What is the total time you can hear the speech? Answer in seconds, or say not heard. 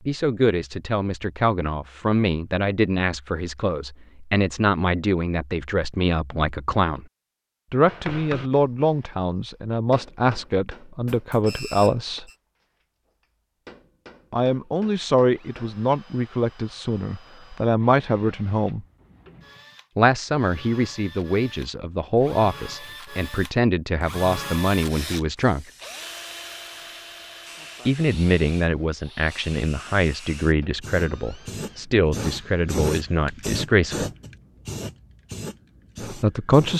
29 s.